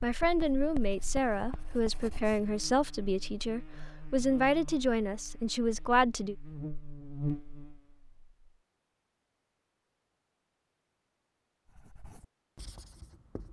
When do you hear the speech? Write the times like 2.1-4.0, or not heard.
0.0-6.3.